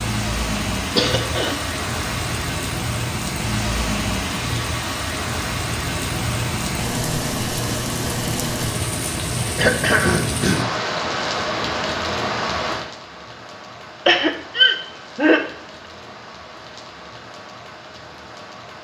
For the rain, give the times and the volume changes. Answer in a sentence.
The rain can be heard from 0.0 to 18.7 s, getting quieter.